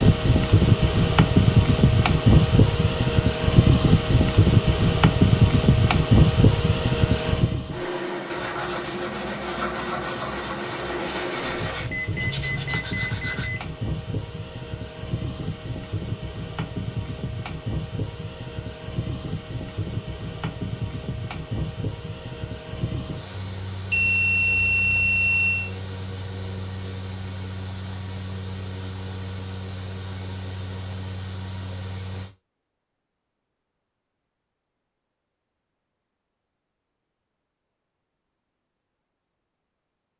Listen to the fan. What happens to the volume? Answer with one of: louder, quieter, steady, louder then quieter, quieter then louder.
quieter.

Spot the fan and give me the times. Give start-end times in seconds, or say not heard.
0.0-32.3.